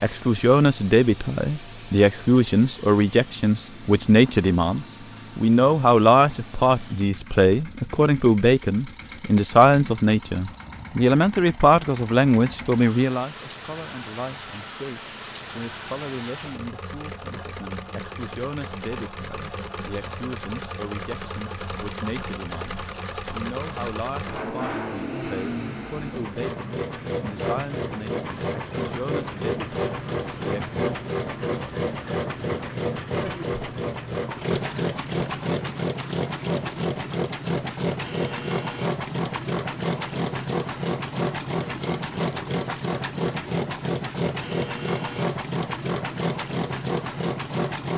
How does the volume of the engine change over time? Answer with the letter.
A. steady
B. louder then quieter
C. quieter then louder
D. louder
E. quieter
D.